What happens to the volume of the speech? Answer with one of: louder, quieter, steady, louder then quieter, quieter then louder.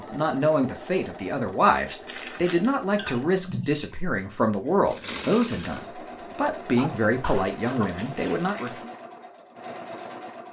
steady.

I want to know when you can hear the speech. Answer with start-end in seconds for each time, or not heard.
0.0-8.8.